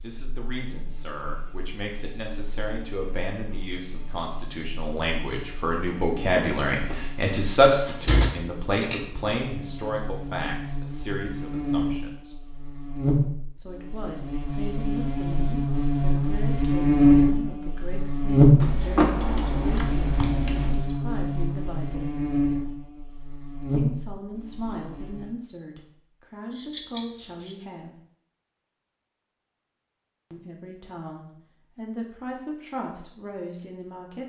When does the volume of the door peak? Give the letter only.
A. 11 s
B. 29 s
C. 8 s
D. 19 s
D.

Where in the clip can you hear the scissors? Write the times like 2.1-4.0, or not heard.
8.7-9.2, 18.6-20.8, 26.5-27.6.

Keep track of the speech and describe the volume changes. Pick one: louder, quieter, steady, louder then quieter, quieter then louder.
louder then quieter.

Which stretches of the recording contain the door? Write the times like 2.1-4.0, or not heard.
6.7-8.3, 18.9-19.8.